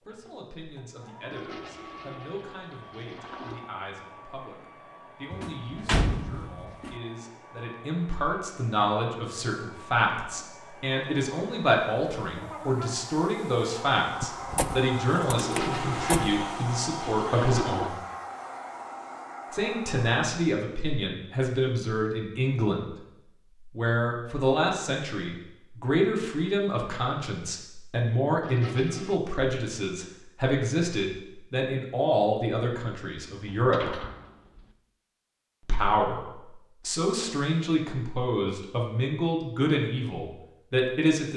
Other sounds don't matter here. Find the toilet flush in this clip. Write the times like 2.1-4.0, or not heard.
1.3-3.7, 15.3-18.0, 28.4-29.2.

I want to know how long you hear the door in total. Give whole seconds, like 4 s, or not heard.
5 s.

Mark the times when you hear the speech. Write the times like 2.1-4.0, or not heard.
0.0-17.9, 19.5-22.9, 23.6-34.0, 35.6-41.3.